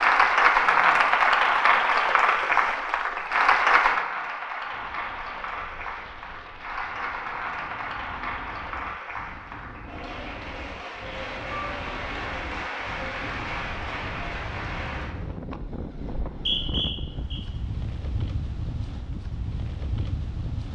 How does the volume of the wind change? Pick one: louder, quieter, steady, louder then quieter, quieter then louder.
louder.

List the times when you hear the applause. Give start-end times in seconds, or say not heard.
0.0-15.2.